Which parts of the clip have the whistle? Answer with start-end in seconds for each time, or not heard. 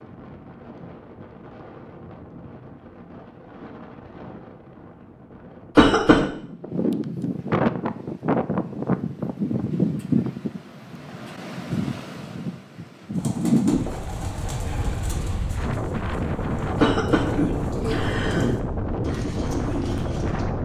not heard.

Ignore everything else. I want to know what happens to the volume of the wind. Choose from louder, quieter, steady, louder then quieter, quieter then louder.
louder.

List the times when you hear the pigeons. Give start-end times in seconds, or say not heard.
13.1-20.4.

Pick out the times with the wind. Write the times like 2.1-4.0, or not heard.
0.0-20.6.